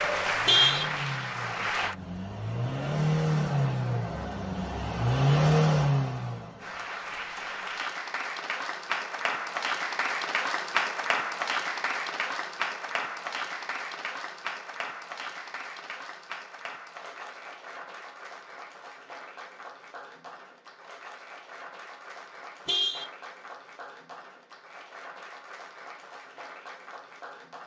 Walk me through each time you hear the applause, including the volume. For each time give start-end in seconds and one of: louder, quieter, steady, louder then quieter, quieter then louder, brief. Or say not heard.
0.0-1.9 brief
6.6-27.6 quieter.